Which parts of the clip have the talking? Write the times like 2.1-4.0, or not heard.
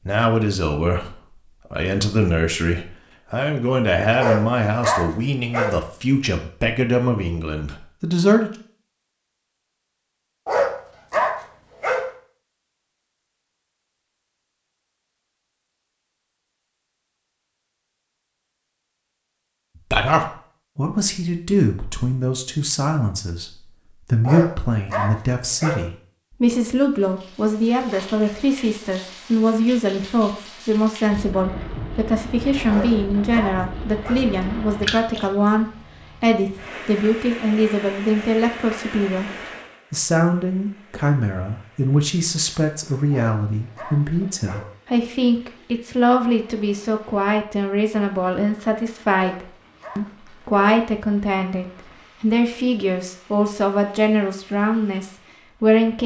0.1-8.5, 19.8-56.0.